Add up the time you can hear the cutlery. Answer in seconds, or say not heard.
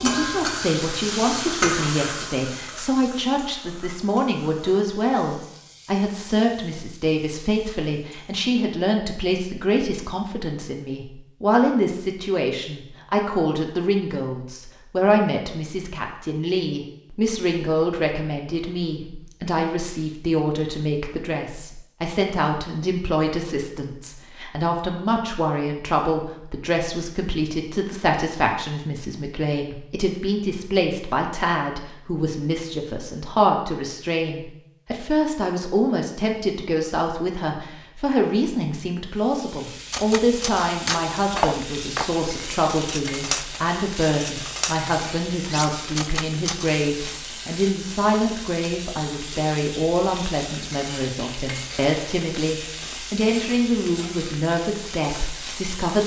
7 s.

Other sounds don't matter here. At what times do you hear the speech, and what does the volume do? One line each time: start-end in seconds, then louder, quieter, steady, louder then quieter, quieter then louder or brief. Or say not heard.
0.0-56.0 steady.